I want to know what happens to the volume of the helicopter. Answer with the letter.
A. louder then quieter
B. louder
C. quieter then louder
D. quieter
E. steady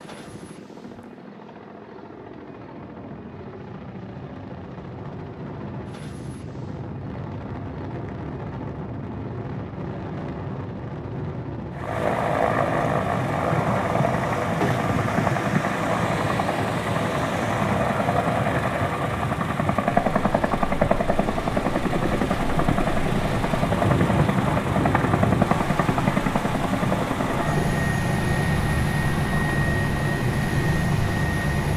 B.